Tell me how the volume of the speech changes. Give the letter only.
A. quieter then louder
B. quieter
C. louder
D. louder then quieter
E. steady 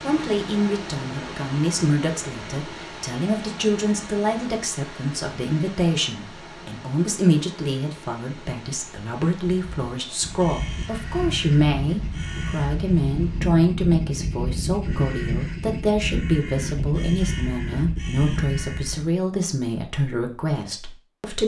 E.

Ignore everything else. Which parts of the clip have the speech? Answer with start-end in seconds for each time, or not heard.
0.0-21.4.